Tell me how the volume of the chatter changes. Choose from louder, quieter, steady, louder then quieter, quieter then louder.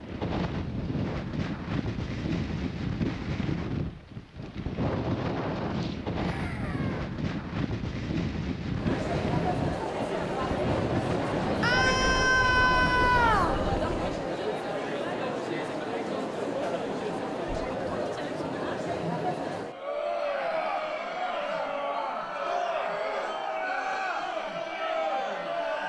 steady.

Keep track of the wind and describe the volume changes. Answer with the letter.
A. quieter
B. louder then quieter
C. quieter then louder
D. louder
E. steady
E.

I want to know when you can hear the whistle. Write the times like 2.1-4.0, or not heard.
not heard.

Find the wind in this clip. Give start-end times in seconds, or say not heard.
0.0-14.2.